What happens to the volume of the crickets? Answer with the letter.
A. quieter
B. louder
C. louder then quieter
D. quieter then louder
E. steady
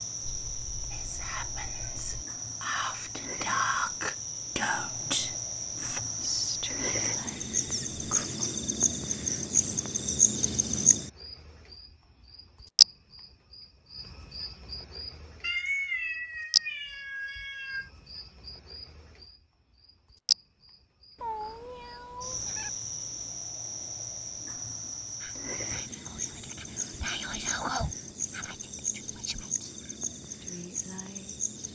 C.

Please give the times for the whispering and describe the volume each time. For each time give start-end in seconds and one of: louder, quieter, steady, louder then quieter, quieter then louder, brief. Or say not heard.
0.9-8.2 louder then quieter
25.2-31.4 louder then quieter.